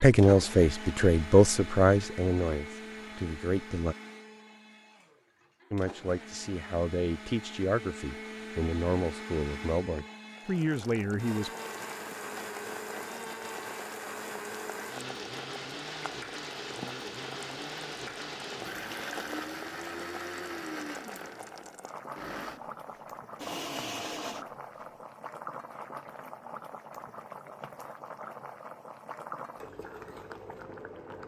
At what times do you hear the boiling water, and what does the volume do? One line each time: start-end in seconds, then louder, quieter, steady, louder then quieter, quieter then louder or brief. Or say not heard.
10.3-31.2 steady.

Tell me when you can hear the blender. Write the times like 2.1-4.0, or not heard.
0.0-24.9.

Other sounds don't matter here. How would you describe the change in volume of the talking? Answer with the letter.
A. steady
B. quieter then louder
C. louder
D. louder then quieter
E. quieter
E.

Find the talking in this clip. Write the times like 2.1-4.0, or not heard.
0.0-4.0, 5.7-11.5.